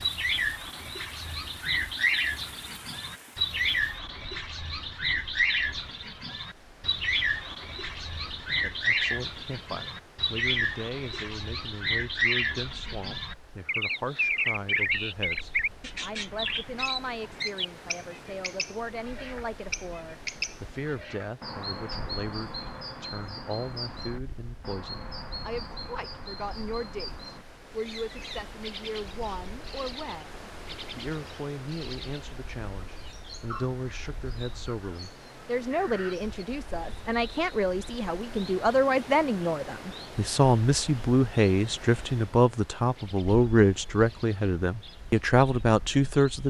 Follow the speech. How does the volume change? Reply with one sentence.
The loudness of the speech goes up.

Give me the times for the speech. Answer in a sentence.
You can hear the speech from 8.5 to 46.4 s.